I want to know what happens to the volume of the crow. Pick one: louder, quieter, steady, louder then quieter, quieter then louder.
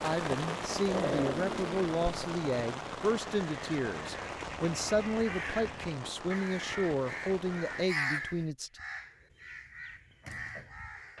louder then quieter.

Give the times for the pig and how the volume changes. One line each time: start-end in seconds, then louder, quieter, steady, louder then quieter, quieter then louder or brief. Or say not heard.
not heard.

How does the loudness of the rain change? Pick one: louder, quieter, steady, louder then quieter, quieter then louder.
quieter.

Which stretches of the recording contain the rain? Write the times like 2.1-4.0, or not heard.
0.0-7.9.